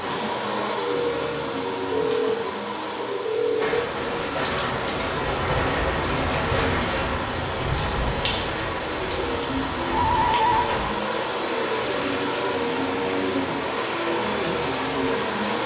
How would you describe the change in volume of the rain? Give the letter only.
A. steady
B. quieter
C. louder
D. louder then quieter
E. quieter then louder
B.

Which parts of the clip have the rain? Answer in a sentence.
The rain can be heard from 3.5 to 15.6 s.